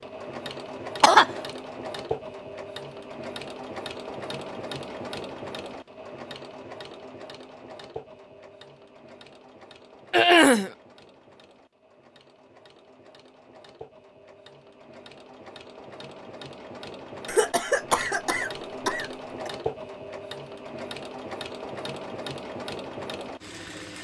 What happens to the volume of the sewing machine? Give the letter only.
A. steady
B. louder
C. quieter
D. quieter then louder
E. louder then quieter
D.